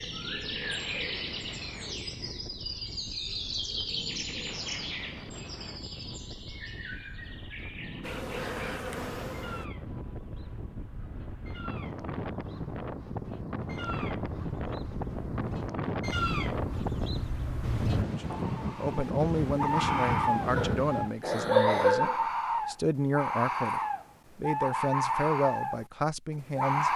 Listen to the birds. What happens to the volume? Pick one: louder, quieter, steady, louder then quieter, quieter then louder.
quieter then louder.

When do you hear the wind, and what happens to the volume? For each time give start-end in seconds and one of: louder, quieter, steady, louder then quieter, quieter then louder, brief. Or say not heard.
0.0-21.3 louder.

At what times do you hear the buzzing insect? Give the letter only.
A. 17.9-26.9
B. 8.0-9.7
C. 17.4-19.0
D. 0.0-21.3
B.